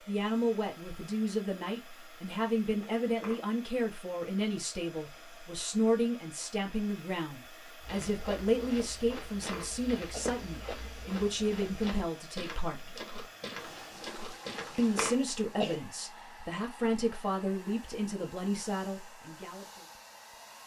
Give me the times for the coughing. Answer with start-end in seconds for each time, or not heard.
3.0-3.5, 9.3-10.3, 14.6-15.8.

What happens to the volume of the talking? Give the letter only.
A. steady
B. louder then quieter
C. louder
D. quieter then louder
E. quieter
A.